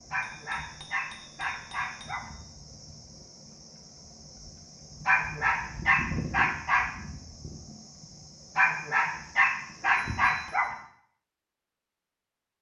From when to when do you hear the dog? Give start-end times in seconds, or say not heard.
0.1-2.3, 5.0-6.9, 8.6-10.8.